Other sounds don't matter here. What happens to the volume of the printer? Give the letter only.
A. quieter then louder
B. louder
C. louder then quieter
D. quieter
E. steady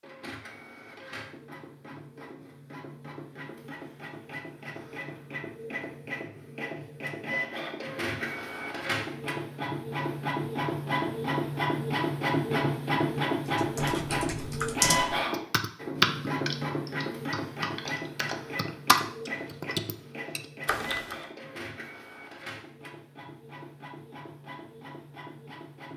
C.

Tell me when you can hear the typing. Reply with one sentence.
The typing can be heard from 13.6 to 21.1 s.